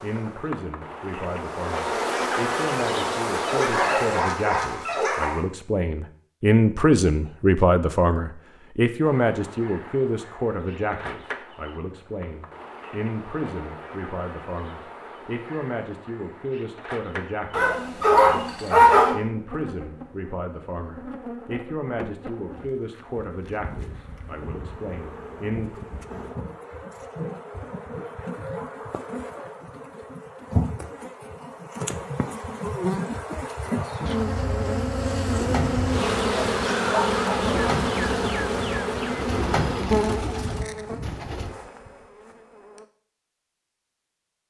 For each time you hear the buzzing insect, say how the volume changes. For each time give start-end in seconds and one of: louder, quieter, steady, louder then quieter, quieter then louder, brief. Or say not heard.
0.0-4.2 louder
9.0-42.9 louder.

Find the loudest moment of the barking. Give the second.
19 s.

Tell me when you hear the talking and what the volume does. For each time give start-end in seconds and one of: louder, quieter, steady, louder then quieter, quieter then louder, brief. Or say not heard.
0.0-25.8 louder then quieter.